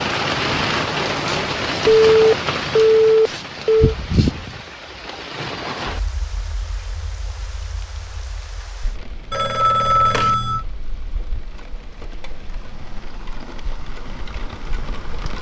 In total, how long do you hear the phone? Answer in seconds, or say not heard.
3 s.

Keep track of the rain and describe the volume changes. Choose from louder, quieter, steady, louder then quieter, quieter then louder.
quieter then louder.